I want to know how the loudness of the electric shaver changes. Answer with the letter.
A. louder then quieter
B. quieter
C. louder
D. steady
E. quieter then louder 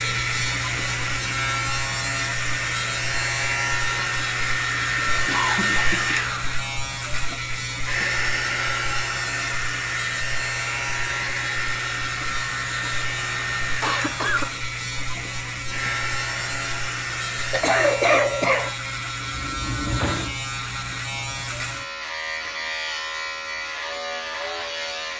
D.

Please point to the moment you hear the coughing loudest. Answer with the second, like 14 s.
18 s.